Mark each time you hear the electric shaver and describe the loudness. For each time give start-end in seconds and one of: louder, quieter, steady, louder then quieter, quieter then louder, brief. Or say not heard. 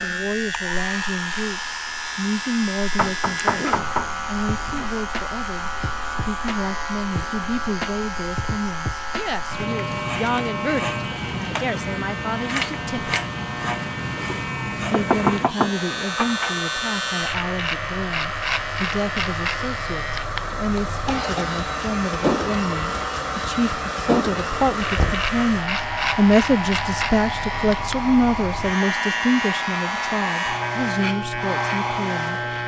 0.0-32.6 steady.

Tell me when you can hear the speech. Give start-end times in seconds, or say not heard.
0.0-13.2, 14.9-32.4.